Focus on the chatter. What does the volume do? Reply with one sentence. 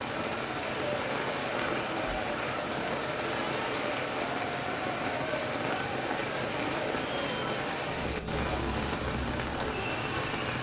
The volume of the chatter stays about the same.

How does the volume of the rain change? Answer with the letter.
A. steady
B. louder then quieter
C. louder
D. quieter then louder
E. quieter
A.